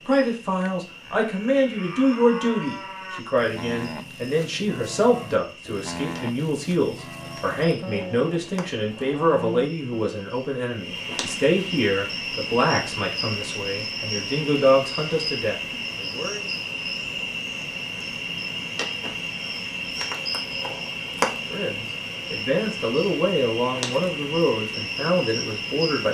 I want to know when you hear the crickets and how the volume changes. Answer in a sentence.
The crickets can be heard from 0.0 to 26.0 s, getting louder.